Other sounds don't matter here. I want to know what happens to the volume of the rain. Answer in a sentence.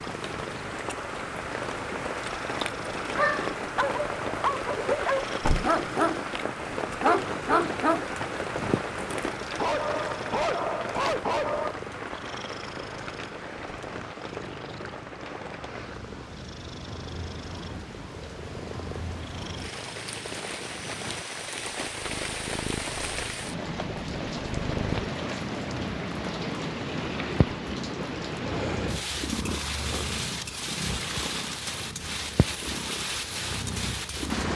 The loudness of the rain goes down, then up.